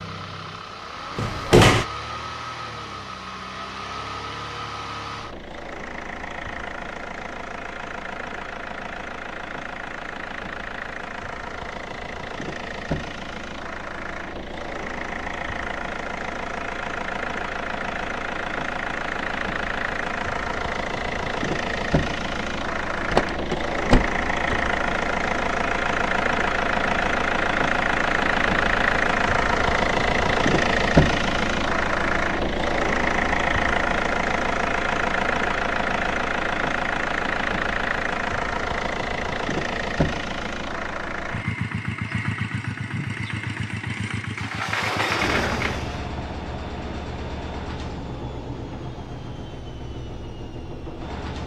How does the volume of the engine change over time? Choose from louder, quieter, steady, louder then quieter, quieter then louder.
louder then quieter.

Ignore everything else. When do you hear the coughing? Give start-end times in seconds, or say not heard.
not heard.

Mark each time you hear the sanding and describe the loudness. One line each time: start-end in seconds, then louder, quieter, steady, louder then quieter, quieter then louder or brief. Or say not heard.
not heard.